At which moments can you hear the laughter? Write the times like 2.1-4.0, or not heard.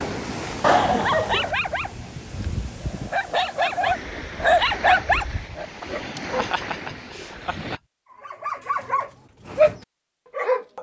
0.6-1.5, 6.2-7.8.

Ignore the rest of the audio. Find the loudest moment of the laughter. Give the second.
1 s.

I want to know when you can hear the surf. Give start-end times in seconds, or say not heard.
0.0-7.8.